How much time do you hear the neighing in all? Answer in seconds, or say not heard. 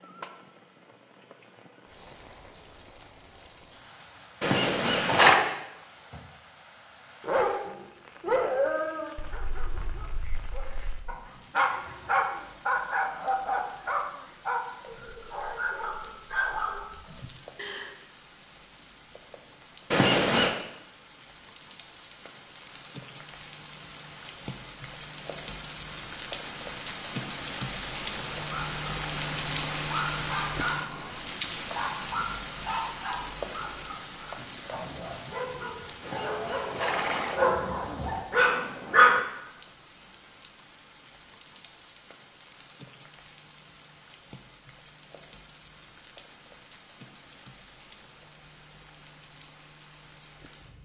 3 s.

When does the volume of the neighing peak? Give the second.
5 s.